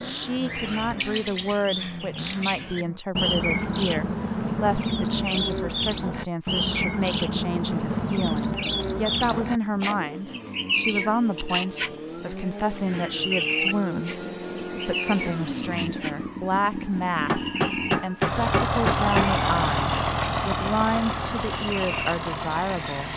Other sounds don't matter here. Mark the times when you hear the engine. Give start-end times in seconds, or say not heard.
0.0-3.0, 9.6-23.1.